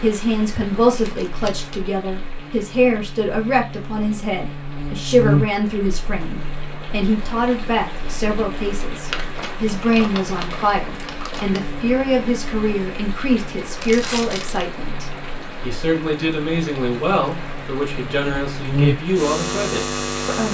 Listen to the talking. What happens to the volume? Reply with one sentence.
The volume of the talking stays about the same.